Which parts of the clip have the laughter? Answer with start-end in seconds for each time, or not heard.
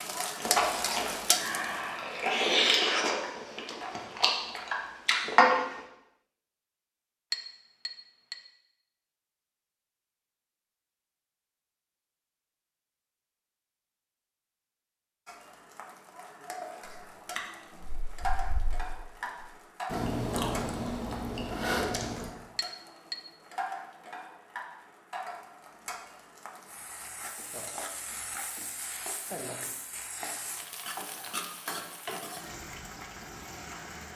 not heard.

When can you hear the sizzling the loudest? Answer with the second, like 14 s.
1 s.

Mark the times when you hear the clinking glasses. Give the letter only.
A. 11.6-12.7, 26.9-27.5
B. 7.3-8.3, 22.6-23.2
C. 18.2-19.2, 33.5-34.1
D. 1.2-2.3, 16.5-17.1
B.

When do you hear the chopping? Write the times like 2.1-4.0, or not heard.
not heard.